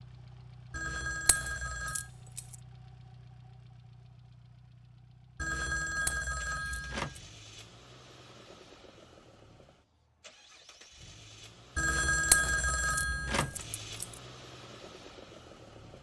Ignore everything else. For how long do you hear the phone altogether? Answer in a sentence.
The phone can be heard for 5 seconds in total.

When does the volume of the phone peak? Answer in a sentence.
The volume of the phone peaks at 12 seconds.